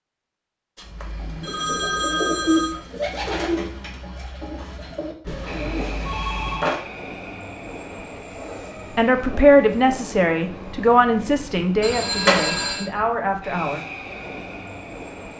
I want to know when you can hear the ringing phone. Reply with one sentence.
The ringing phone can be heard from 0.8 to 2.8 s, from 5.2 to 6.8 s and from 11.8 to 12.8 s.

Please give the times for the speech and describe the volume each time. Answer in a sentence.
You can hear the speech from 8.9 to 13.8 s, getting quieter.